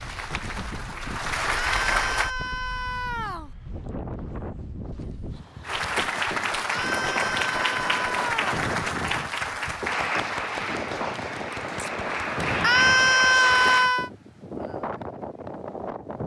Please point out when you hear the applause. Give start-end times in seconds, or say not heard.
0.0-2.3, 5.6-13.9.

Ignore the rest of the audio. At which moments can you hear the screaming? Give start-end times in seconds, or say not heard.
1.5-3.5, 6.7-8.4, 12.6-14.1.